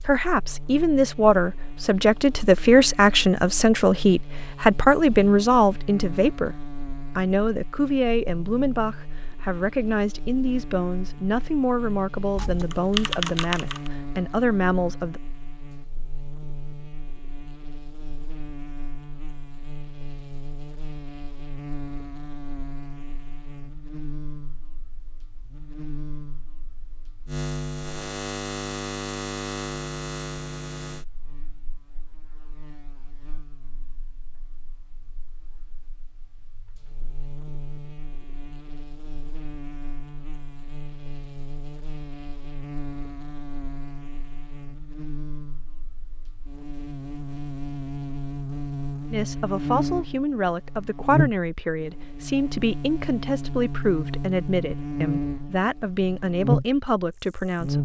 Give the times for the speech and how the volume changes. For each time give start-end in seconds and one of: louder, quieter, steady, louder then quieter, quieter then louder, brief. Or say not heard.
0.0-6.5 steady
7.2-15.2 steady
49.1-57.8 steady.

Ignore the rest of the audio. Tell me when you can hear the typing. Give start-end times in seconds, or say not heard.
12.3-13.9.